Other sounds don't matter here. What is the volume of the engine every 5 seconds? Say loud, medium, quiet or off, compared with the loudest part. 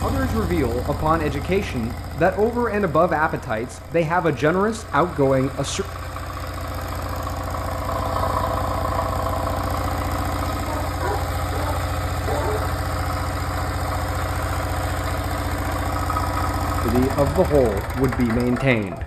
medium, loud, loud, loud.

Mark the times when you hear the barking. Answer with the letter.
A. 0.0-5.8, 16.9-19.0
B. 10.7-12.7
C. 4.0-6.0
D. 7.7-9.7
B.